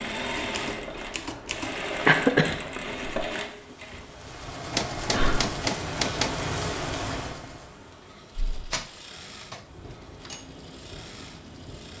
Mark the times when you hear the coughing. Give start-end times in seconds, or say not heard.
2.0-2.6.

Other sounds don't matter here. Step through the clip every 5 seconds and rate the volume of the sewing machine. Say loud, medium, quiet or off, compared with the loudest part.
loud, medium, quiet.